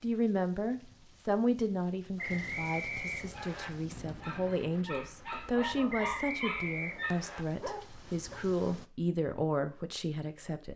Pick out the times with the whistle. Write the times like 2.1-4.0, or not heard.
2.1-3.7, 5.9-7.5.